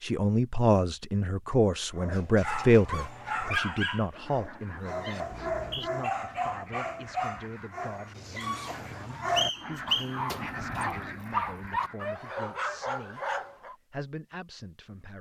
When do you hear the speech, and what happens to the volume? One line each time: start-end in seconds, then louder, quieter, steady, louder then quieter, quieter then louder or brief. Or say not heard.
0.0-15.1 quieter.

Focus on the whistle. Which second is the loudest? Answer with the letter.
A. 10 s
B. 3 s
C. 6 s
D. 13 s
A.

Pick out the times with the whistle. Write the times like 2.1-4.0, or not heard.
5.3-5.9, 9.3-10.1.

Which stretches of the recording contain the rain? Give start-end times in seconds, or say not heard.
not heard.